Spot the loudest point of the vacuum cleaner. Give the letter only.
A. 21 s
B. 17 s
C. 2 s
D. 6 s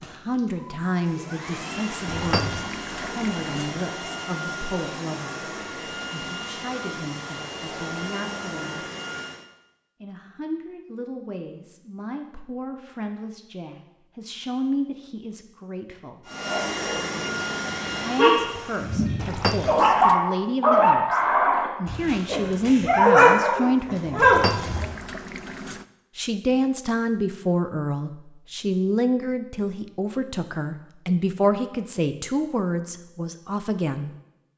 B.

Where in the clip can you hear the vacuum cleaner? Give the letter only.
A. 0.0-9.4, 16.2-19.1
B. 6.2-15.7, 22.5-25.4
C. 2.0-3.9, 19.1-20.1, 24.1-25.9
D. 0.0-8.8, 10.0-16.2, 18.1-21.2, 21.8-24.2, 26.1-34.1
A.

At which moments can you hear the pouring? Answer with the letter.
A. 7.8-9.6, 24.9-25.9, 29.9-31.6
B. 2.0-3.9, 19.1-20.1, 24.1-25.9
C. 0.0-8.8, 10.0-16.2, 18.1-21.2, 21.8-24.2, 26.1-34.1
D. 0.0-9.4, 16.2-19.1
B.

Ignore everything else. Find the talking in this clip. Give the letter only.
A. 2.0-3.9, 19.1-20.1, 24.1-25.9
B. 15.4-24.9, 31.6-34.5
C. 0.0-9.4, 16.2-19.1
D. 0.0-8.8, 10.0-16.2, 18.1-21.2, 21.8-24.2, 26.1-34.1
D.